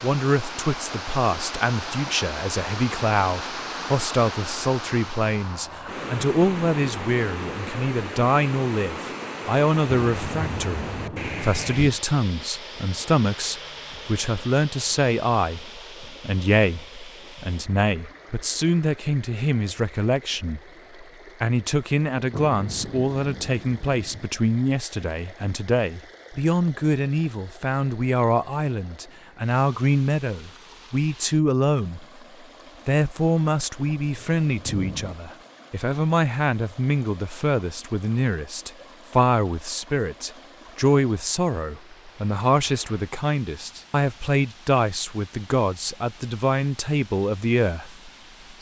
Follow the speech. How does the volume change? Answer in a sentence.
The loudness of the speech stays about the same.